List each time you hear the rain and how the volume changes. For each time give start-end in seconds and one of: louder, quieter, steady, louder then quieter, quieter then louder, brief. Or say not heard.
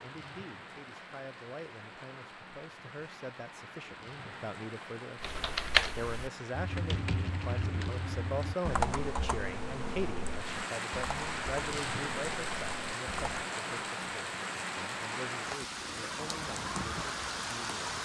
0.0-18.0 louder.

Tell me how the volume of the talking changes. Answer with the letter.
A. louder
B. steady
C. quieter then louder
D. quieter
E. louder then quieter
E.